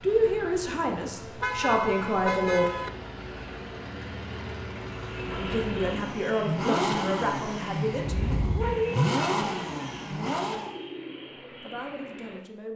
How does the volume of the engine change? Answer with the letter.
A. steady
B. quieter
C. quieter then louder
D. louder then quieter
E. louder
E.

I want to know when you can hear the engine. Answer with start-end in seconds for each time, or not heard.
0.0-10.8.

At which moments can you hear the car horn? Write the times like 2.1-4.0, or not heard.
1.4-2.9, 8.1-8.8.